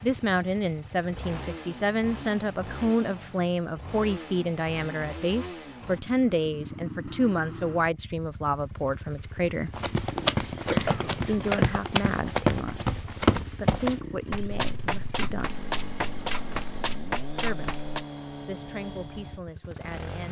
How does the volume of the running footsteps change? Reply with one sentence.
The volume of the running footsteps goes down.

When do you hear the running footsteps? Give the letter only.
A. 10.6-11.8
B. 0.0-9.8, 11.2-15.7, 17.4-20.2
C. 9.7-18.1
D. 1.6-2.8
C.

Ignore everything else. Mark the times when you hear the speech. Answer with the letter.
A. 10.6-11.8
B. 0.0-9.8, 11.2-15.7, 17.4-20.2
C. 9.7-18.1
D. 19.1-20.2
B.